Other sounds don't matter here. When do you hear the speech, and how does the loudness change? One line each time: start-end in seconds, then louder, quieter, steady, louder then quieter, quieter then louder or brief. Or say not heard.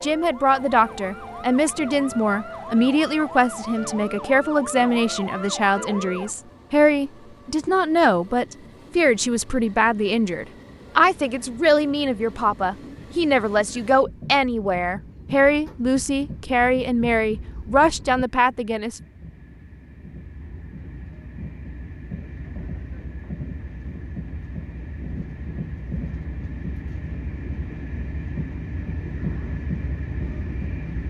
0.0-19.0 steady.